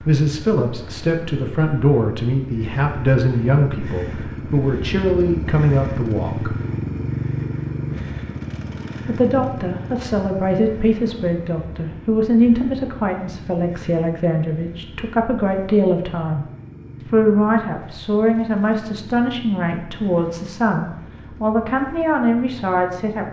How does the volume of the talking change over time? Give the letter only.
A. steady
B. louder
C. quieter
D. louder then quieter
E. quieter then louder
A.